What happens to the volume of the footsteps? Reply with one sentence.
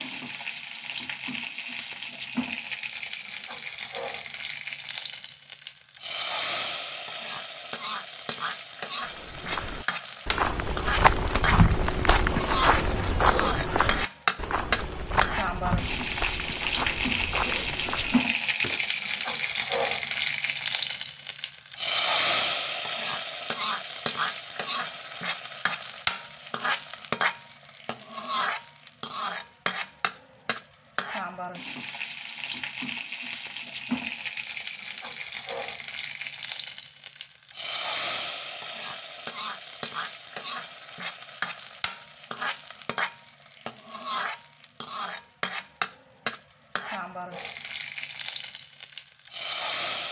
The loudness of the footsteps goes down.